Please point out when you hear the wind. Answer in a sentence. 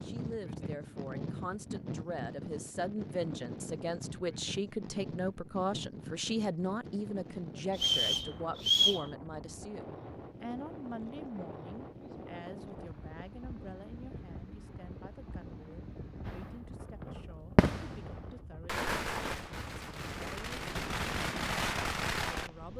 The wind can be heard from 0.0 to 22.7 s.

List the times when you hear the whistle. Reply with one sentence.
The whistle can be heard from 7.8 to 9.1 s.